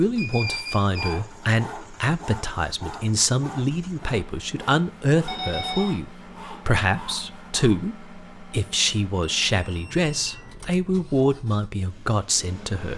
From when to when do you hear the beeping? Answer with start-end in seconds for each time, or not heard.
0.1-1.1, 5.2-6.0, 9.2-10.5.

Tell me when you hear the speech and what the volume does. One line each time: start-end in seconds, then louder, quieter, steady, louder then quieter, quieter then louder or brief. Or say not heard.
0.0-12.9 steady.